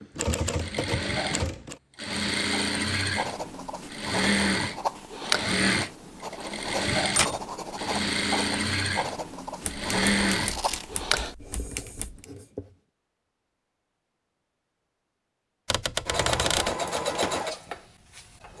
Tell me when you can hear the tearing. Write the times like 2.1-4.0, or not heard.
10.3-10.8.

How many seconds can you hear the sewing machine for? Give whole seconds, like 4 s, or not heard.
13 s.